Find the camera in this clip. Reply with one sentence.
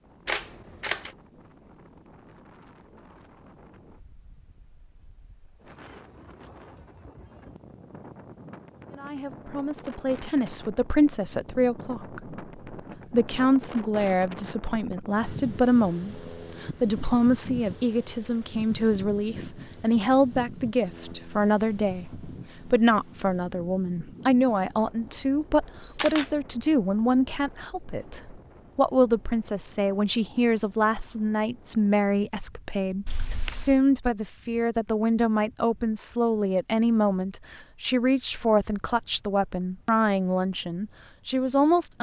The camera can be heard from 0.2 to 1.1 s, from 25.8 to 26.3 s and from 33.0 to 33.8 s.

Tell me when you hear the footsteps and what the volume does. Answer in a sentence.
You can't hear the footsteps here.